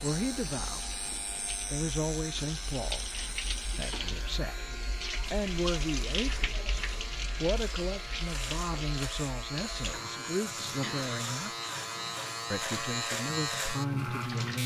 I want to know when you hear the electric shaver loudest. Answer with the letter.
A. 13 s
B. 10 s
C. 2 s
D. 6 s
A.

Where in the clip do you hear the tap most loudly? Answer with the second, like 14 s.
6 s.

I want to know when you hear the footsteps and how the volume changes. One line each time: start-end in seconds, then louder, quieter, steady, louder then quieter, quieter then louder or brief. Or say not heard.
not heard.